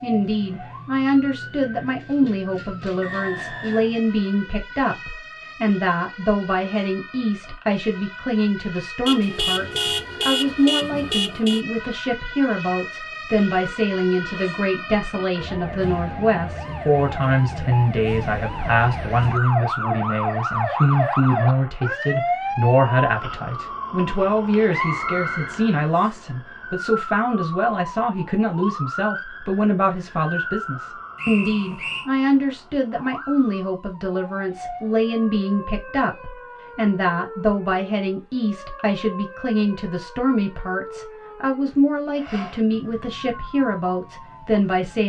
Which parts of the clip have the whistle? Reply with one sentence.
The whistle can be heard from 3.0 to 4.0 s, from 24.7 to 26.2 s and from 31.1 to 32.0 s.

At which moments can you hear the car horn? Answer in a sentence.
You can hear the car horn from 9.1 to 11.7 s.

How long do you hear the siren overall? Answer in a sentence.
You can hear the siren for 45 seconds altogether.